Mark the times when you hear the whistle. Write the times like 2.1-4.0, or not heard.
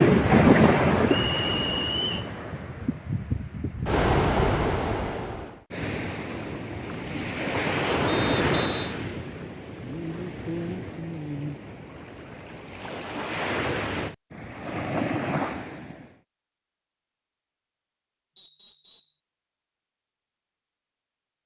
1.1-2.3, 8.1-8.9, 18.4-19.2.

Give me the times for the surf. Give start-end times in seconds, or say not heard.
0.0-16.1.